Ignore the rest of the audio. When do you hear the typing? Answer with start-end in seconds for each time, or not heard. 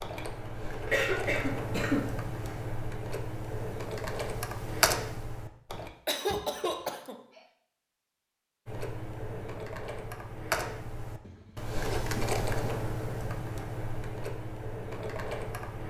0.0-5.9, 8.7-15.8.